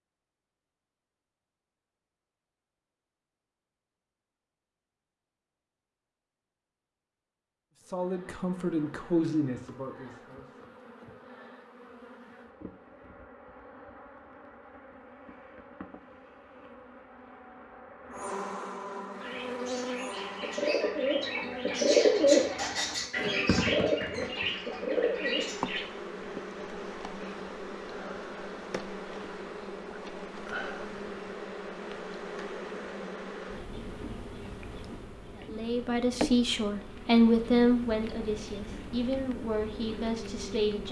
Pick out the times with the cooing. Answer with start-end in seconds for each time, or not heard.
19.1-25.9.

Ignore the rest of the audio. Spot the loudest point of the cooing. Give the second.
22 s.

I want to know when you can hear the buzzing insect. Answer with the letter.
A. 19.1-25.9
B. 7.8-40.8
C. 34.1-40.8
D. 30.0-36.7
B.